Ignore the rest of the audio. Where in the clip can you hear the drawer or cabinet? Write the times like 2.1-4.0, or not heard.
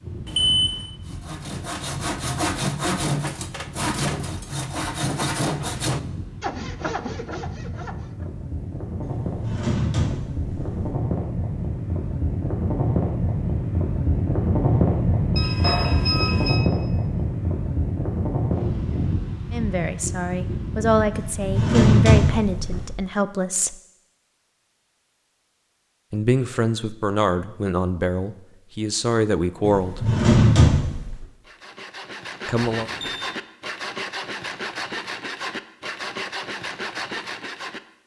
9.0-10.9, 21.1-22.9, 29.6-31.2.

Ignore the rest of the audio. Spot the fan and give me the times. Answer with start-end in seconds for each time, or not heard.
0.0-22.9.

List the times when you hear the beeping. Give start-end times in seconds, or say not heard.
0.2-0.8, 15.3-16.6, 32.8-33.3.